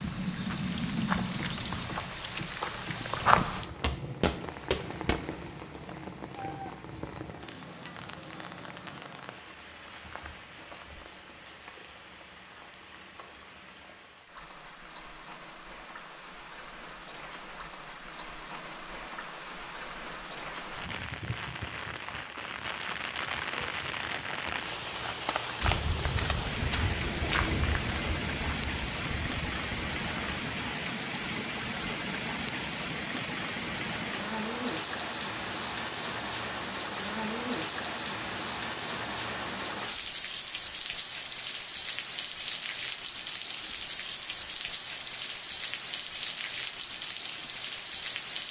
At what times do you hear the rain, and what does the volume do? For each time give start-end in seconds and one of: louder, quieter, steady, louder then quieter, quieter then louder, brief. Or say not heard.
0.0-48.4 quieter then louder.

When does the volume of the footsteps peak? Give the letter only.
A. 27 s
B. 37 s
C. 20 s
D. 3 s
D.